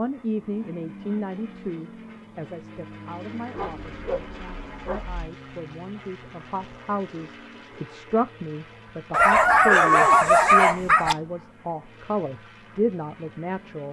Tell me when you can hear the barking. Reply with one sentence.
You can hear the barking from 3.5 to 5.2 s and from 9.1 to 11.2 s.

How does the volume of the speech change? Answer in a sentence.
The loudness of the speech goes down, then up.